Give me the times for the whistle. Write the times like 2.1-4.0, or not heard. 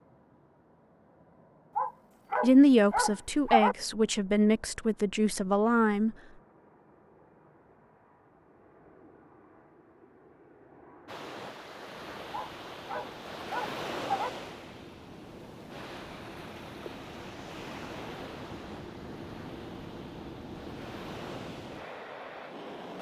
not heard.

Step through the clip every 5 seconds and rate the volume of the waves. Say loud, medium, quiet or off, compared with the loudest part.
off, off, loud, medium, medium.